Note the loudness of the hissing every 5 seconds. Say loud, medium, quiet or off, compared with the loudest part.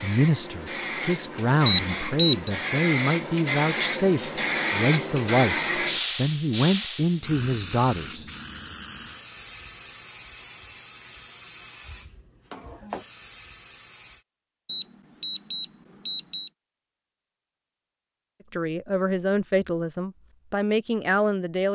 loud, loud, quiet, off, off.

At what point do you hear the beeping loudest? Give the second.
2 s.